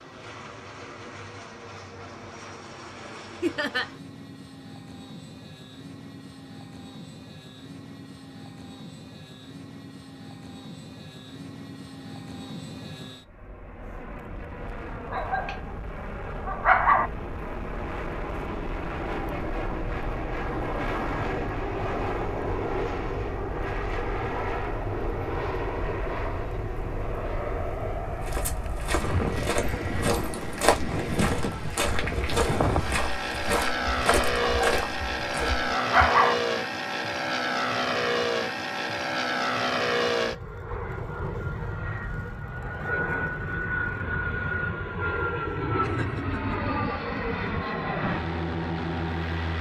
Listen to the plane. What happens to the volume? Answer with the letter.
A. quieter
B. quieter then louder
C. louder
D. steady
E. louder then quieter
C.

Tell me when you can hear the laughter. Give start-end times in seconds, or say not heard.
3.4-3.9, 45.8-46.6.